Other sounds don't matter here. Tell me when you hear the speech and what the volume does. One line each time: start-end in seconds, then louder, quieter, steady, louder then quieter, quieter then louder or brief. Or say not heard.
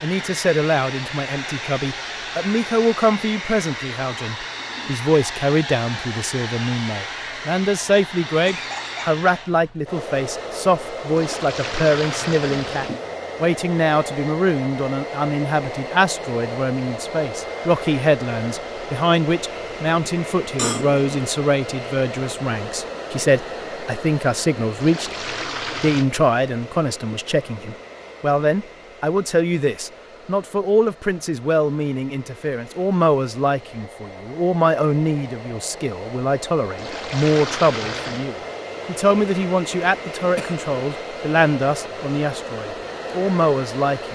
0.0-44.0 steady.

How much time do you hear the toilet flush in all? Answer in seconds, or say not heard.
5 s.